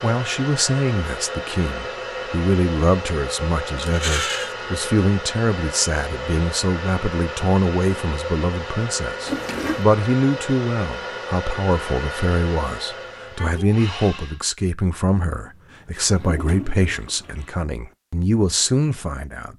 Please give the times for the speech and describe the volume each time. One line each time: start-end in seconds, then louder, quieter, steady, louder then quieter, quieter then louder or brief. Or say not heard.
0.0-19.5 steady.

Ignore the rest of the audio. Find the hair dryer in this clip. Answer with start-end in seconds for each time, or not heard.
0.0-14.4.